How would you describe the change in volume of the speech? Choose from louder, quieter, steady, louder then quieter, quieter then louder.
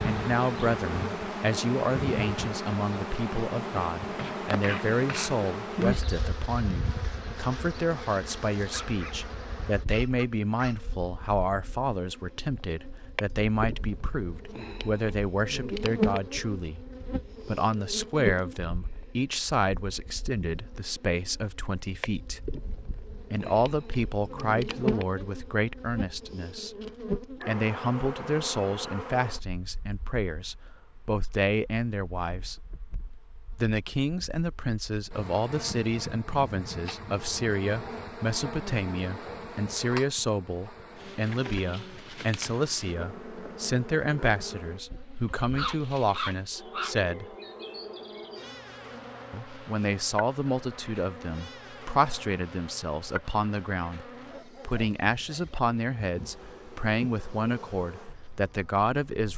steady.